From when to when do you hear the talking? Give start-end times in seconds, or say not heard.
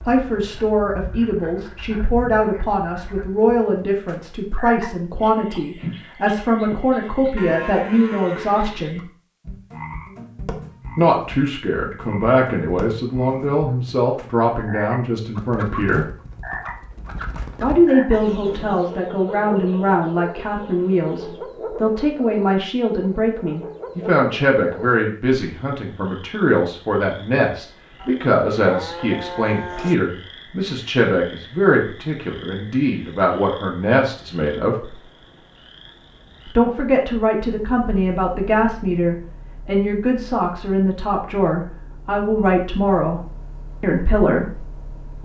0.1-9.0, 10.9-16.1, 17.6-34.8, 36.5-43.2, 43.8-45.2.